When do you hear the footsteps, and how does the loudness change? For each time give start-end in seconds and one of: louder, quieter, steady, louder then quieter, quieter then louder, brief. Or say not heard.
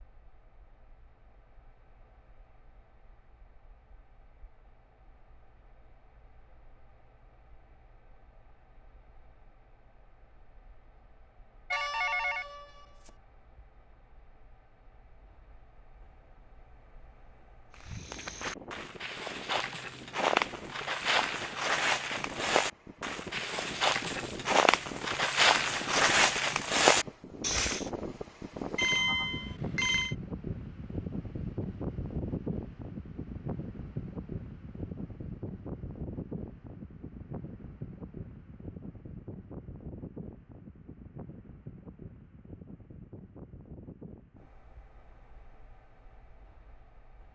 17.7-27.9 louder.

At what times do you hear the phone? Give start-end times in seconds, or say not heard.
11.7-13.1, 28.8-30.1.